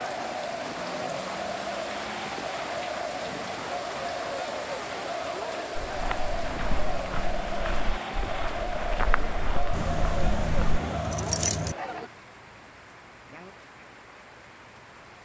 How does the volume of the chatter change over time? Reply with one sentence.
The volume of the chatter stays about the same.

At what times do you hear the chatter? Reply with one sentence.
The chatter can be heard from 0.0 to 12.1 s.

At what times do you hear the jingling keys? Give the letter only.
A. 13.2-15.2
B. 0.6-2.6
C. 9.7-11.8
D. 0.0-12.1
C.